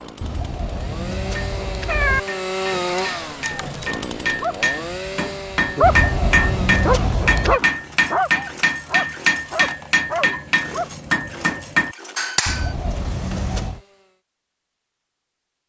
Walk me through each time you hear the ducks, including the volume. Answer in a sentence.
You can't hear the ducks here.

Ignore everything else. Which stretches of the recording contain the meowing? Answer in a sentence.
You can hear the meowing from 0.2 to 2.2 s, from 5.8 to 7.6 s and from 12.4 to 13.8 s.